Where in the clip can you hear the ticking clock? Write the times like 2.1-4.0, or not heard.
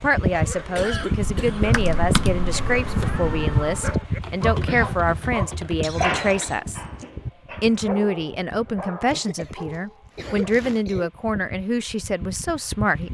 not heard.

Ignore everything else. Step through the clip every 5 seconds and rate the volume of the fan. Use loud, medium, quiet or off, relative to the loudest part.
loud, medium, medium.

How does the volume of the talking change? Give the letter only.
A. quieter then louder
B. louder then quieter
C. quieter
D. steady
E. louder
D.